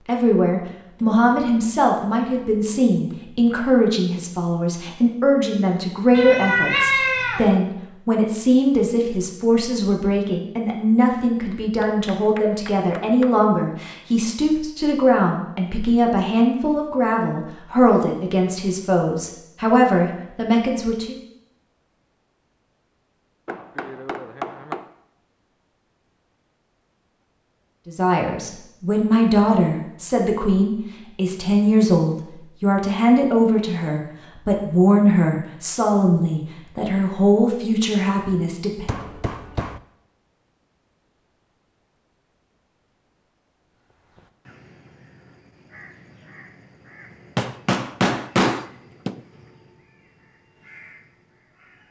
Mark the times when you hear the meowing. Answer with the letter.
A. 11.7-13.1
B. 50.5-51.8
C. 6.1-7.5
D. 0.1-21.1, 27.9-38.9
C.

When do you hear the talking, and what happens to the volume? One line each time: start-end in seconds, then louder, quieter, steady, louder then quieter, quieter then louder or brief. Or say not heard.
0.1-21.1 steady
27.9-38.9 steady.